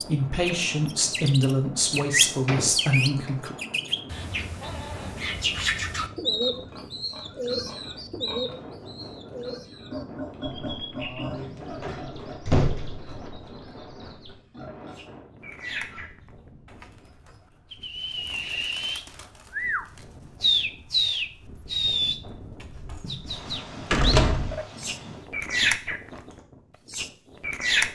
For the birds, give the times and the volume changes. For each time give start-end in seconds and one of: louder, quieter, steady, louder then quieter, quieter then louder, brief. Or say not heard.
0.0-26.1 quieter then louder
26.9-27.9 brief.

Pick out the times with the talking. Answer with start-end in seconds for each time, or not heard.
0.0-3.5.